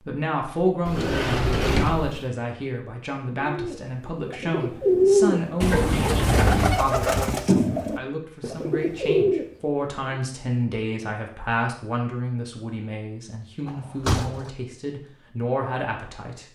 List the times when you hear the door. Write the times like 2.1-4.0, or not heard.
0.8-2.2, 5.6-6.8, 13.7-14.5.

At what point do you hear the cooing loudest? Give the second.
5 s.